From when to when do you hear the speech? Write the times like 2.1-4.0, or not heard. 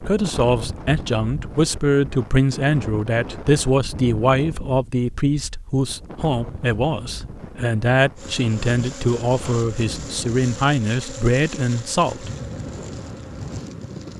0.0-12.3.